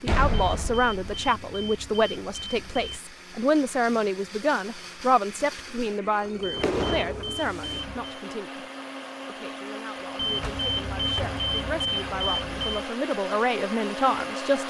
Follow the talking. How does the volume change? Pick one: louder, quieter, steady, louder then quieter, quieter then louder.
quieter then louder.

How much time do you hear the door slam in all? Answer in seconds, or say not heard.
4 s.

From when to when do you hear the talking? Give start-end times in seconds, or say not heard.
0.0-14.6.